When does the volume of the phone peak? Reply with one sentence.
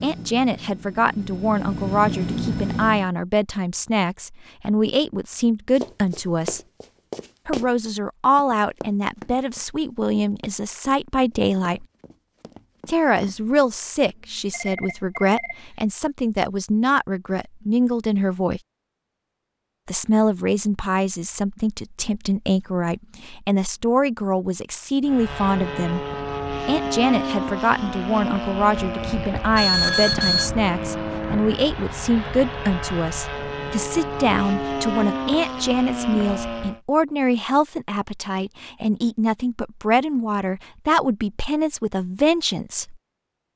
The volume of the phone peaks at 30 seconds.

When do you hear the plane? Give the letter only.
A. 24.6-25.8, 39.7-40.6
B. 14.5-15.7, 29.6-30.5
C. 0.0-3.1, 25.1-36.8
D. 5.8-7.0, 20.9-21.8
C.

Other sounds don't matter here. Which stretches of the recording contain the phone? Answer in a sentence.
The phone can be heard from 14.5 to 15.7 s and from 29.6 to 30.5 s.